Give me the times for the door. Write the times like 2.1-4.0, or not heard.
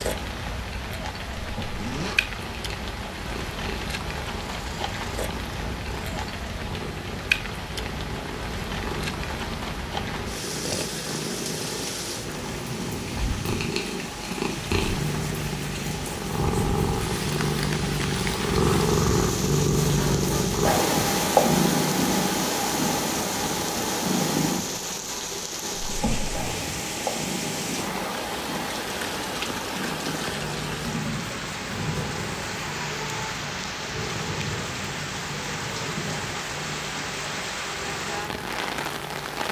not heard.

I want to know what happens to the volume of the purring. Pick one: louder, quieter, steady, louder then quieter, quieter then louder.
louder then quieter.